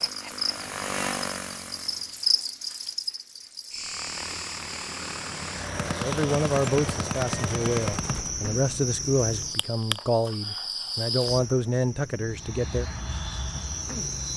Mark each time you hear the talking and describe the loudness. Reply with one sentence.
The talking can be heard from 6.0 to 12.8 s, at a steady volume.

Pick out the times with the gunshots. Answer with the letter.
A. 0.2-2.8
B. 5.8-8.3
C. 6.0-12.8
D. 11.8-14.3
B.